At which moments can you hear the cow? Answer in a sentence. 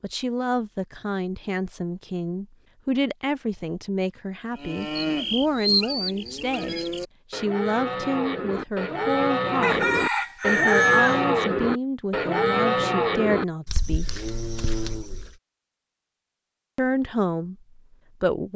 You can hear the cow from 4.5 to 15.3 s.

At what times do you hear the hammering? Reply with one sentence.
You can't hear the hammering here.